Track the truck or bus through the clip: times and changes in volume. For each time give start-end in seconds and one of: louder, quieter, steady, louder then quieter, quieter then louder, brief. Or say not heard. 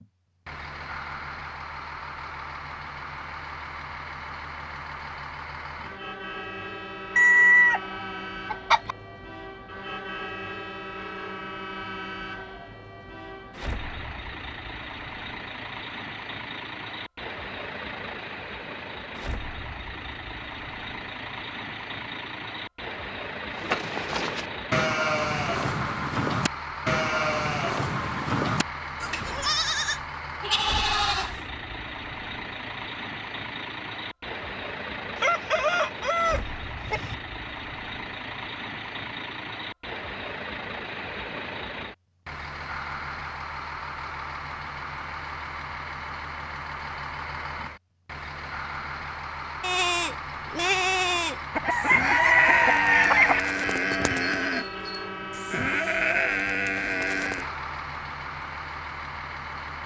0.0-59.8 steady.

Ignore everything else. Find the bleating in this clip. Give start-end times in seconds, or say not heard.
23.5-31.4, 49.6-57.5.